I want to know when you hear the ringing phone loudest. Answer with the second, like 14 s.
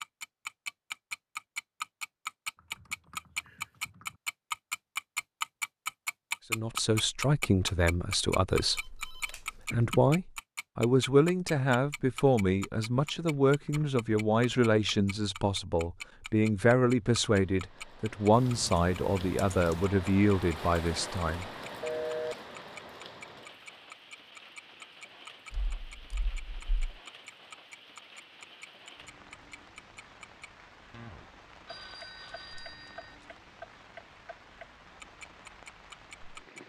22 s.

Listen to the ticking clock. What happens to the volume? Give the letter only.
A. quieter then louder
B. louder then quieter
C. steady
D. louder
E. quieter
E.